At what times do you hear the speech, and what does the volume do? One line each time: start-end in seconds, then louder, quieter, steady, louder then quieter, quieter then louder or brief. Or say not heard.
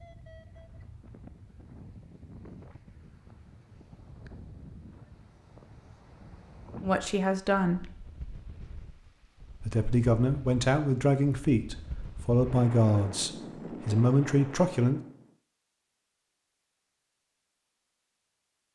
6.8-7.9 brief
9.6-15.0 steady.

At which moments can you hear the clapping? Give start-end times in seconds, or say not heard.
not heard.